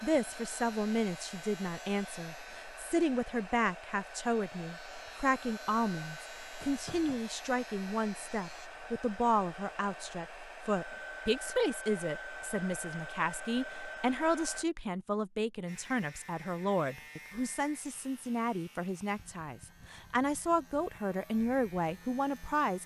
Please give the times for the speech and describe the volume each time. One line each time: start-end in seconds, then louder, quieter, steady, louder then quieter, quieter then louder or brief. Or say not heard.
0.0-22.8 steady.